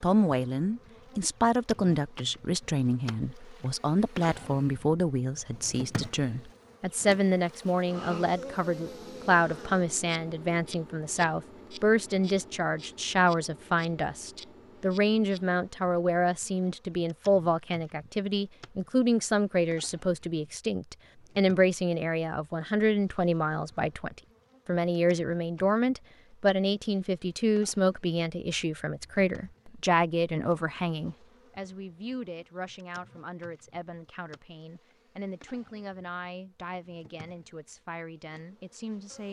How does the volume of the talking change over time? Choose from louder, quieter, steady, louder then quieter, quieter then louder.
quieter.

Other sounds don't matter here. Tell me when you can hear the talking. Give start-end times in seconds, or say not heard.
0.0-39.2.